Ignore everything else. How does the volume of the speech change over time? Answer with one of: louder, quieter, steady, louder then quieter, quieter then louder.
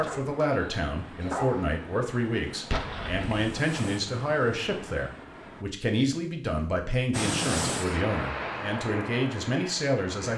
steady.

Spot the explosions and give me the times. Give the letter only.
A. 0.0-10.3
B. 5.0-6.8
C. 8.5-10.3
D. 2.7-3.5
D.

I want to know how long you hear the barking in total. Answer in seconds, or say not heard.
2 s.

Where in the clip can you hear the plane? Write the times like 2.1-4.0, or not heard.
0.1-5.7, 7.1-10.3.